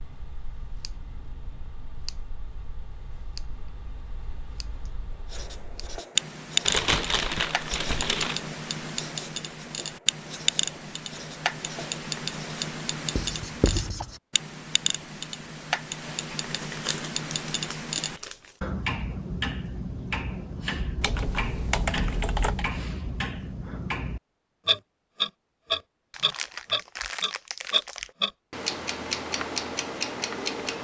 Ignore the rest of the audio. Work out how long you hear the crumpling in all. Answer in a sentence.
You can hear the crumpling for 6 seconds altogether.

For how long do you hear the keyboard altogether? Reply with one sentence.
You can hear the keyboard for 2 seconds altogether.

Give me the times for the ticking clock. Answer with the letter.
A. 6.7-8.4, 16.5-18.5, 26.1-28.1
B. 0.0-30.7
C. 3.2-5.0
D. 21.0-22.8
B.